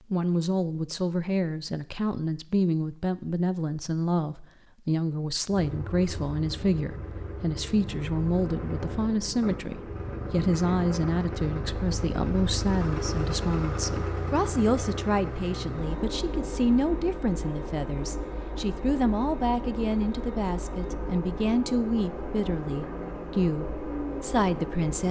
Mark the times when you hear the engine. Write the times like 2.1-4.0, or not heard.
5.5-25.0.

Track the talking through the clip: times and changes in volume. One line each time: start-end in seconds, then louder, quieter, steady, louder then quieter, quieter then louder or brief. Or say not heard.
0.1-25.0 steady.